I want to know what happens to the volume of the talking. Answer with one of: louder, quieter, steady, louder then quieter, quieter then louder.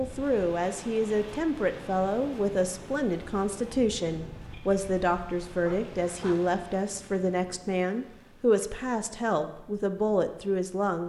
steady.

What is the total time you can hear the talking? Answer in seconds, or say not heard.
11 s.